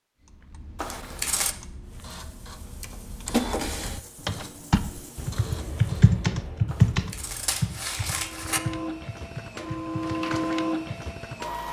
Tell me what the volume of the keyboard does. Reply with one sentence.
The volume of the keyboard goes up, then down.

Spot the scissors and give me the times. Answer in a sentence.
You can hear the scissors from 0.8 to 1.6 s and from 6.7 to 8.6 s.